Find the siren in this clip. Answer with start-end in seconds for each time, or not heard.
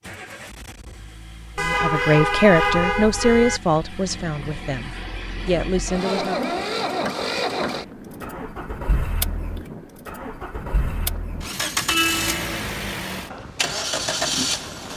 not heard.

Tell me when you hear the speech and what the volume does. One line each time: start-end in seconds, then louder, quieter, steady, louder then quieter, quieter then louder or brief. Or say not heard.
1.6-6.6 quieter then louder.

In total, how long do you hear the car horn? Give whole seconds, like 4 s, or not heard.
3 s.